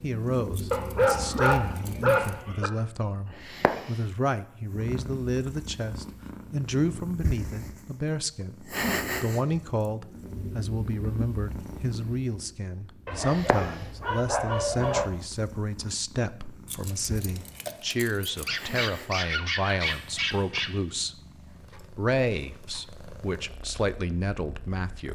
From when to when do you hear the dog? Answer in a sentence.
The dog can be heard from 0.7 to 2.7 s, from 13.1 to 15.1 s and from 18.4 to 20.7 s.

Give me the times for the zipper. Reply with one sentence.
You can't hear the zipper here.